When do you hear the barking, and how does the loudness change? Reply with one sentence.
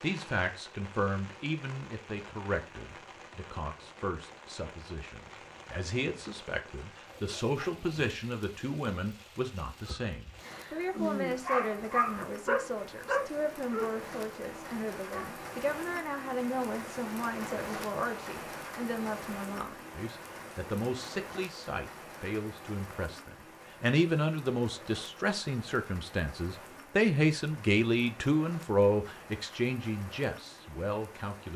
The barking can be heard from 10.4 to 15.3 s, getting quieter.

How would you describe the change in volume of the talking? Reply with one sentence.
The loudness of the talking goes up.